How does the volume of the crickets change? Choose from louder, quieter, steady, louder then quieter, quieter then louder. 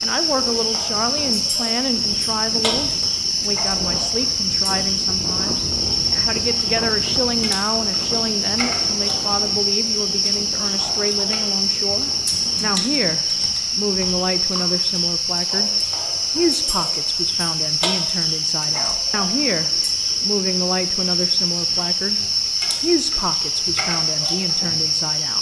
steady.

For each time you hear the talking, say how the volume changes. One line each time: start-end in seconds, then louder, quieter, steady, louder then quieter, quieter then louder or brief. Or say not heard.
0.0-25.3 steady.